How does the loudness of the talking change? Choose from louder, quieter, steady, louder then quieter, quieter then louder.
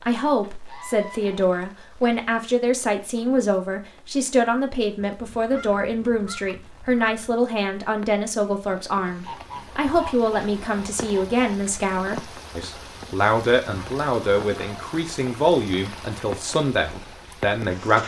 steady.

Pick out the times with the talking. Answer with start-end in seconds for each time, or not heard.
0.0-18.0.